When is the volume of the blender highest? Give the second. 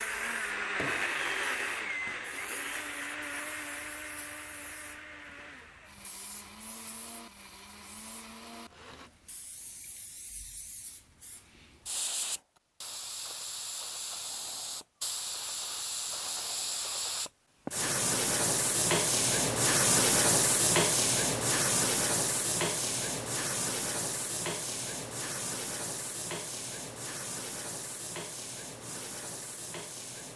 1 s.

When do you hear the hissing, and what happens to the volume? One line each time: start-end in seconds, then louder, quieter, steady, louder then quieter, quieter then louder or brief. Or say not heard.
0.0-30.3 louder then quieter.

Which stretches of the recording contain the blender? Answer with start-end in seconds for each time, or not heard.
0.0-9.1.